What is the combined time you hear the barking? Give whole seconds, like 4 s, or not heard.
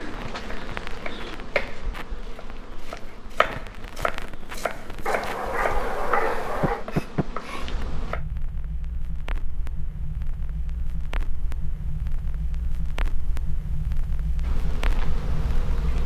2 s.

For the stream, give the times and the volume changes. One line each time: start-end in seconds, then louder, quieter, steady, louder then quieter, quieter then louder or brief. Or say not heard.
not heard.